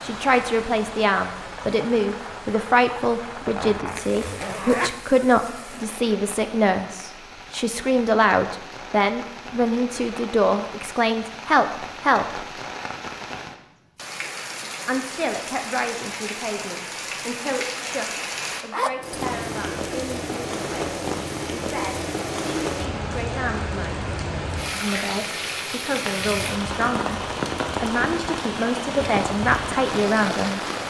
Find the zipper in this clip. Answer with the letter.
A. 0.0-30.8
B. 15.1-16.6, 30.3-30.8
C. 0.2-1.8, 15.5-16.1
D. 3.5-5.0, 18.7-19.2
D.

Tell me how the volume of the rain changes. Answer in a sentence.
The volume of the rain goes up.